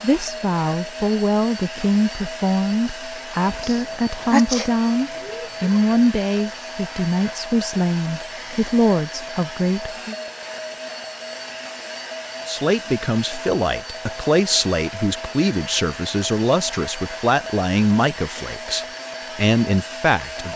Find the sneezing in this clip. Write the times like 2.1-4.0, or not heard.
3.6-5.8.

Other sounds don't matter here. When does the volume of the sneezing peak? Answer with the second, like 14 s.
4 s.